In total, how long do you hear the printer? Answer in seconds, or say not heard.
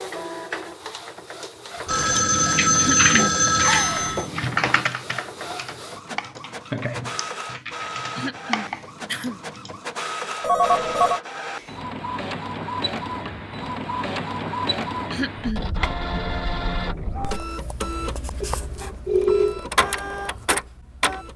21 s.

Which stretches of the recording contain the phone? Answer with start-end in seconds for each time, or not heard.
1.9-4.2, 10.4-11.2, 18.4-19.6.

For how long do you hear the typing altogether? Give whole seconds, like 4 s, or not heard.
8 s.